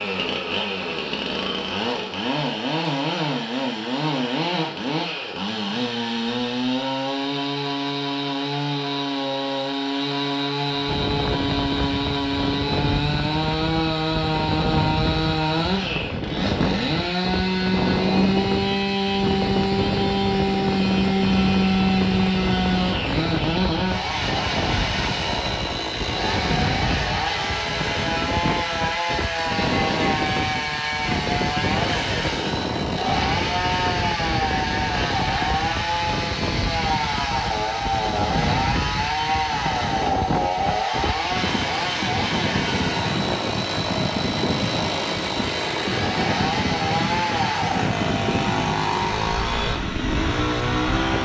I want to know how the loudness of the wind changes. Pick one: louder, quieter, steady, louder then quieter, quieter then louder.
steady.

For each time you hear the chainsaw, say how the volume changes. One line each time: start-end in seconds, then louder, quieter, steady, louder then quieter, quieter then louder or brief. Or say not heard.
0.0-51.2 steady.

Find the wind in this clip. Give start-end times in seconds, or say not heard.
10.8-51.2.